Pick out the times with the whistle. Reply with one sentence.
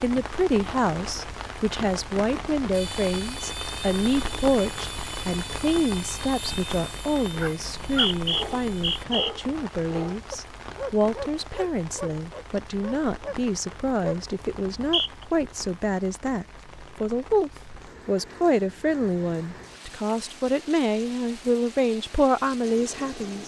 You can hear the whistle from 7.5 to 9.3 s and from 14.6 to 15.2 s.